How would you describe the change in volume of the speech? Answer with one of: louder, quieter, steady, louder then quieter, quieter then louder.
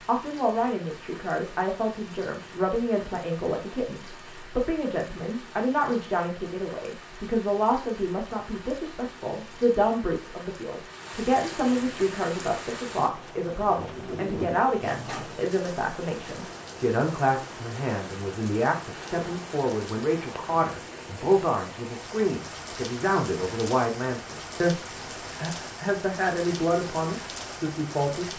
steady.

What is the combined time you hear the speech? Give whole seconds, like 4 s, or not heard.
28 s.